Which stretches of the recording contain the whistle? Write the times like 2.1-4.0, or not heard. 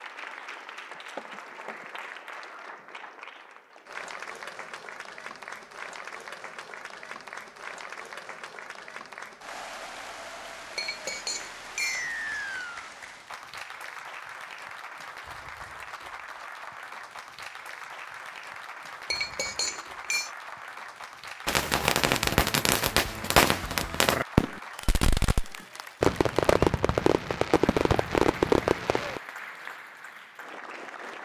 11.9-12.9.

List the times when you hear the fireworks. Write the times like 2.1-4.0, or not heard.
21.4-29.2.